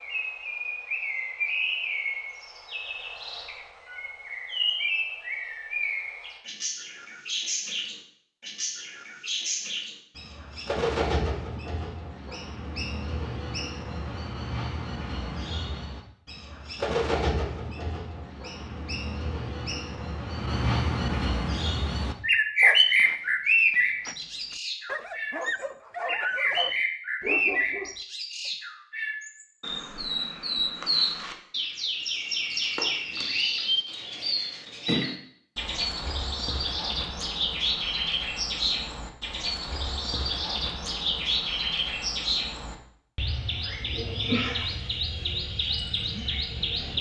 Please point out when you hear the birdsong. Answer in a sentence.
The birdsong can be heard from 0.0 to 46.9 s.